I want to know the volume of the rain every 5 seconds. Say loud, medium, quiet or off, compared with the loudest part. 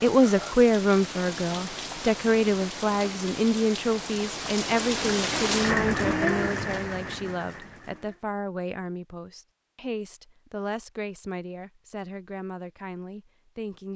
medium, loud, off.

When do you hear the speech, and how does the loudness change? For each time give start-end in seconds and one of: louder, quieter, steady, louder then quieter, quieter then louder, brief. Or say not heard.
0.0-13.9 quieter.